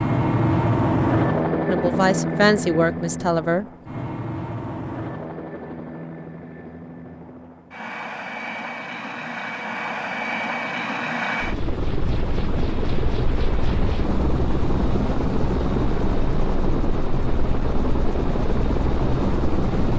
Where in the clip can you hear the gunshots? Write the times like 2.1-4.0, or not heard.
not heard.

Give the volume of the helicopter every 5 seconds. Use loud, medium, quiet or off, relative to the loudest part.
loud, medium, loud, loud.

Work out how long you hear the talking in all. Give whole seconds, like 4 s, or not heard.
2 s.